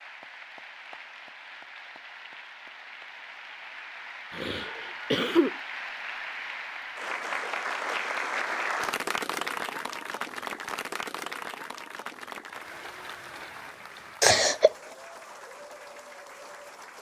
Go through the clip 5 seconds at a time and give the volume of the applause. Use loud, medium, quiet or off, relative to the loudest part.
medium, loud, medium, quiet.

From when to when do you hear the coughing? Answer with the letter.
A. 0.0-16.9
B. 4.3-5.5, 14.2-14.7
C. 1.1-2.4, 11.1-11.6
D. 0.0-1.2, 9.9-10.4
B.